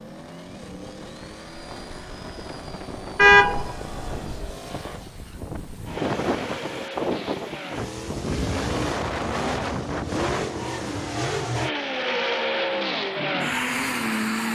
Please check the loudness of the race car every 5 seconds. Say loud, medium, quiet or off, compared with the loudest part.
quiet, medium, loud.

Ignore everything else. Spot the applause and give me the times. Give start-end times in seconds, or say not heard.
not heard.